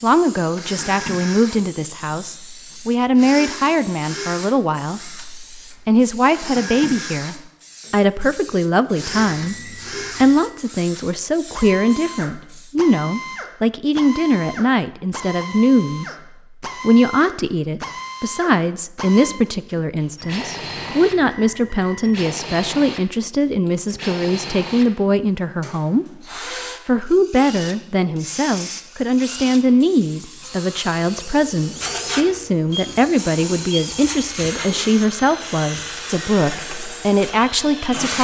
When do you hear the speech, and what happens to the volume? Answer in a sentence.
The speech can be heard from 0.0 to 26.2 s, at a steady volume; and from 26.9 to 38.2 s, at a steady volume.